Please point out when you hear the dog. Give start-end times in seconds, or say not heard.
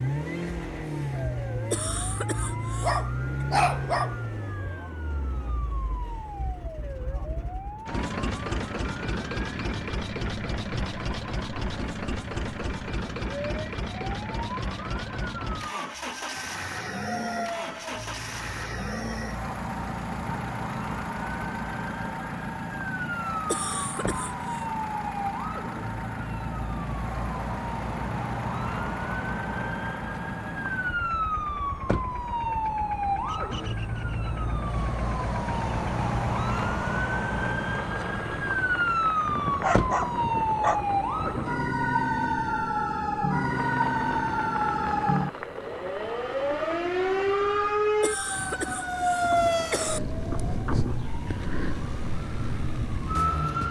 2.8-4.2, 39.2-41.5.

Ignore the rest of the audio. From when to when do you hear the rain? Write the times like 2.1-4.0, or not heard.
not heard.